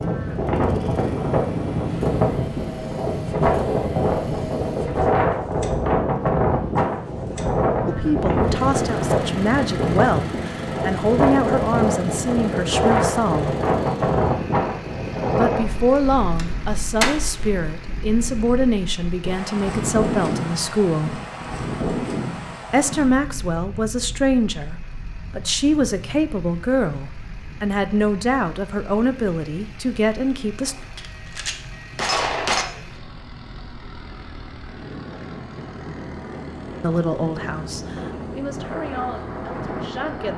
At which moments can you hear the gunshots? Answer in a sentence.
The gunshots can be heard from 16.4 to 17.4 s and from 30.6 to 32.6 s.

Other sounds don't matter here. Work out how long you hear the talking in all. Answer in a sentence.
The talking can be heard for 23 seconds in total.